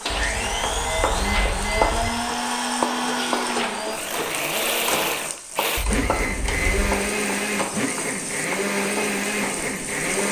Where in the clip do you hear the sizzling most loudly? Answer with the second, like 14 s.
2 s.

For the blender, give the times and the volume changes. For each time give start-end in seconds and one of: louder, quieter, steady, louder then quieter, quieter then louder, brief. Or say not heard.
0.0-10.2 steady.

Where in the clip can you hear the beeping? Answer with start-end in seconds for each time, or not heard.
0.1-2.1, 5.8-6.9.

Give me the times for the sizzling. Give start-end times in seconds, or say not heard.
0.0-10.2.